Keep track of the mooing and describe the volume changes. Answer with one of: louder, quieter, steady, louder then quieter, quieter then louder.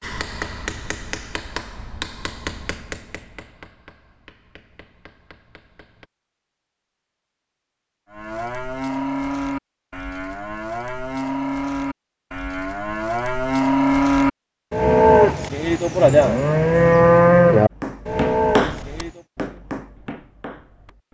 louder.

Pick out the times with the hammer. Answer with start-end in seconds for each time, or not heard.
0.0-6.1, 17.7-21.0.